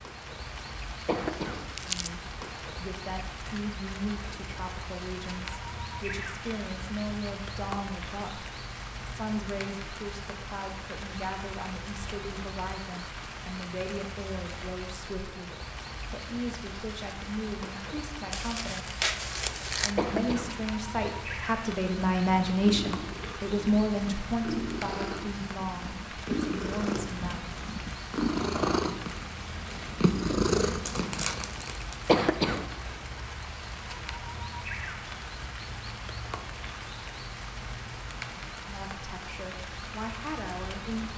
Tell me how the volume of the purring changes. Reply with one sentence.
The loudness of the purring goes up.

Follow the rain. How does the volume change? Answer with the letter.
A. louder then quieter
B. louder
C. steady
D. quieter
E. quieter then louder
C.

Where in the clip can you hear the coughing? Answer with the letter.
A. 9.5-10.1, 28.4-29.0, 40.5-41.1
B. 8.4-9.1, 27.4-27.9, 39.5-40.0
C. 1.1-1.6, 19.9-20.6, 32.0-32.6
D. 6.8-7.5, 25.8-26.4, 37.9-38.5
C.